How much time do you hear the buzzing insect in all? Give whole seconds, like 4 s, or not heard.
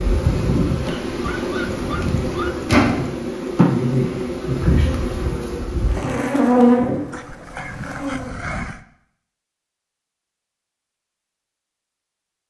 8 s.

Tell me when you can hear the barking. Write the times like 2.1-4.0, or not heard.
0.8-2.6, 7.1-8.8.